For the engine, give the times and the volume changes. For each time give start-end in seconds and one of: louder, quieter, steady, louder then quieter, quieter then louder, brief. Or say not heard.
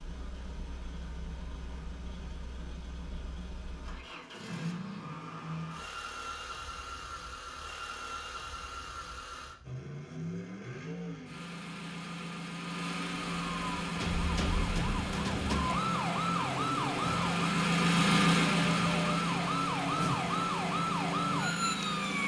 0.0-22.2 louder.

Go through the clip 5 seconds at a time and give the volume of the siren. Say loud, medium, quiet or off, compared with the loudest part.
off, off, medium, loud, loud.